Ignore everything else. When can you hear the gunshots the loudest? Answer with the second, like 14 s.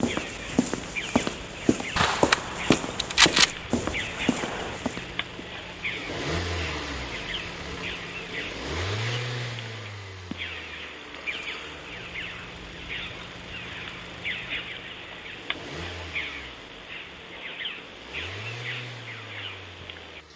3 s.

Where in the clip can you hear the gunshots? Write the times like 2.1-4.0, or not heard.
1.9-4.8.